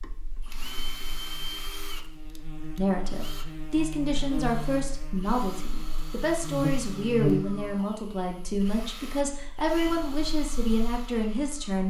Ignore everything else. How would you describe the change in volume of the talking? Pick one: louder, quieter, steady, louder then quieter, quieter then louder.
steady.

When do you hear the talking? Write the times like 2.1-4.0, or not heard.
2.8-11.8.